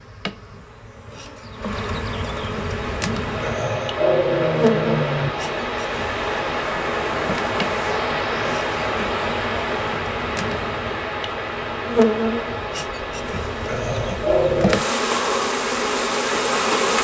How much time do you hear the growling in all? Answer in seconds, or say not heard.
3 s.